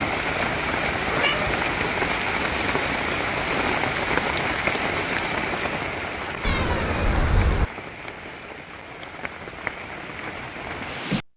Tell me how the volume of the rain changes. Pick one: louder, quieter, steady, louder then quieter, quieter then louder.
quieter.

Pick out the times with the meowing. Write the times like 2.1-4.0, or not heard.
1.0-1.5, 6.4-7.7.